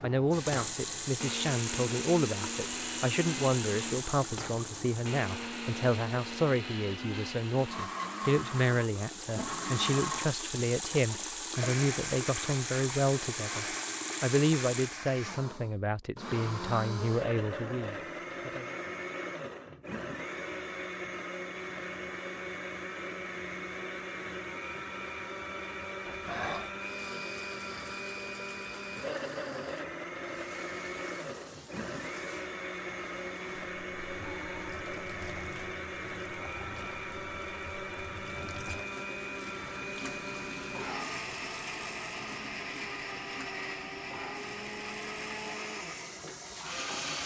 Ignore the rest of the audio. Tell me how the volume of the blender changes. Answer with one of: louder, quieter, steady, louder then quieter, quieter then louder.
steady.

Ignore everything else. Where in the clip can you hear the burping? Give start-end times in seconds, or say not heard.
26.1-26.8.